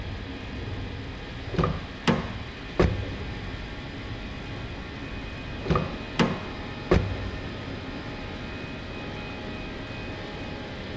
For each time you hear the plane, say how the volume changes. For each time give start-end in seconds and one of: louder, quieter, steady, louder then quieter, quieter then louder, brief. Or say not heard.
0.0-10.9 steady.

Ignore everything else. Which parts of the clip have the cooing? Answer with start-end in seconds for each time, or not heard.
not heard.